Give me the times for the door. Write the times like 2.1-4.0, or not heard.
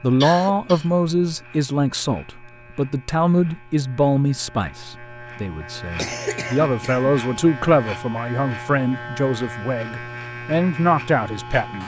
not heard.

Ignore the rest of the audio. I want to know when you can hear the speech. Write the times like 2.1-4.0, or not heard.
0.0-11.8.